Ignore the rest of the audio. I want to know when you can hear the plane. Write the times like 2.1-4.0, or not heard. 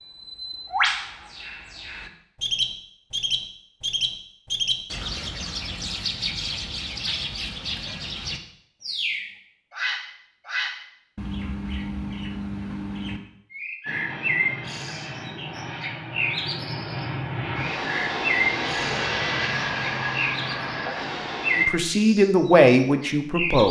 13.8-21.6.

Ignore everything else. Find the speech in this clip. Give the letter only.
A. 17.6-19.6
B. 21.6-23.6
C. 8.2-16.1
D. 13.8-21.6
B.